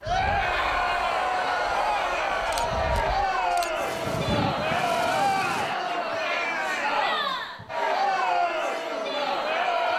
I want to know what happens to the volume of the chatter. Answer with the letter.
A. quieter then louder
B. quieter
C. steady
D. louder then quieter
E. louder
C.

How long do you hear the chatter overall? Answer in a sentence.
The chatter can be heard for 10 seconds in total.